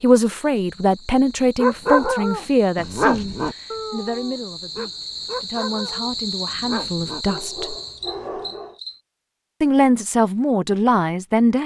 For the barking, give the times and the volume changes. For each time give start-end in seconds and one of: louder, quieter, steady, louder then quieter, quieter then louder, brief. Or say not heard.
1.6-8.8 quieter.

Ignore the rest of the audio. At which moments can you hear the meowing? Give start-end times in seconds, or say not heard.
not heard.